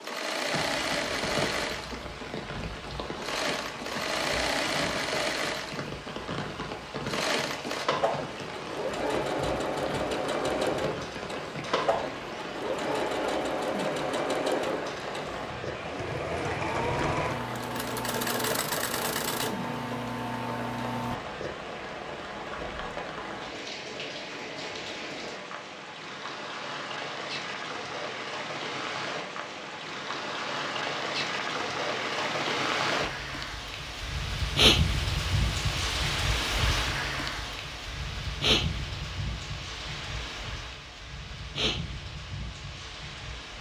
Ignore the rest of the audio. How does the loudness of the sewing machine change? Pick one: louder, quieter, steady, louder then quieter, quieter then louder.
steady.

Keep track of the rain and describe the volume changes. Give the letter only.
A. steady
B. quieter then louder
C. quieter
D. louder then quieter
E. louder
E.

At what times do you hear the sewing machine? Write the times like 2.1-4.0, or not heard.
0.0-21.2.